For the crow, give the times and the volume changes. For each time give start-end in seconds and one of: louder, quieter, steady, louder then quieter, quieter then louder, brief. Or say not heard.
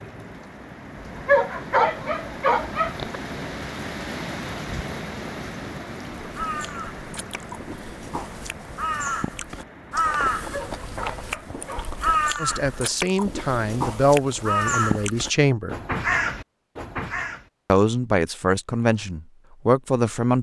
6.2-17.4 louder.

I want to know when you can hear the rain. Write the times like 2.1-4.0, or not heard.
0.0-12.2.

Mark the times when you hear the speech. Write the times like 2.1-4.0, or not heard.
12.4-15.8, 17.7-20.3.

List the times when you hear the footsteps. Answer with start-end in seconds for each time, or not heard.
not heard.